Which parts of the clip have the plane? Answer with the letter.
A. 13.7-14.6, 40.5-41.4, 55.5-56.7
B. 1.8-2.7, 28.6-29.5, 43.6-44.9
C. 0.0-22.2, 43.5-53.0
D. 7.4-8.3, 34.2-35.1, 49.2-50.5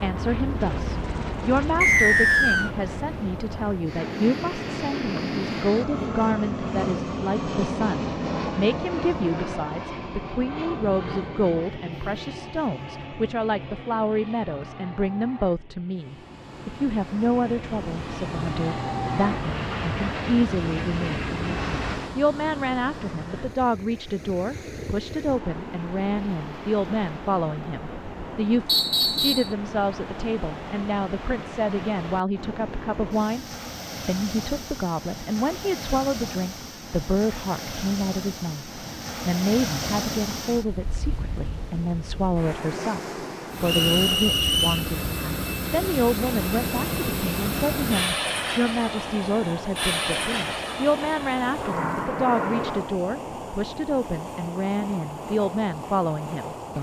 C.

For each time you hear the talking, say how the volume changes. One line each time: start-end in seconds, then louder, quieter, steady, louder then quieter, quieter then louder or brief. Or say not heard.
0.0-33.5 steady
34.0-56.7 steady.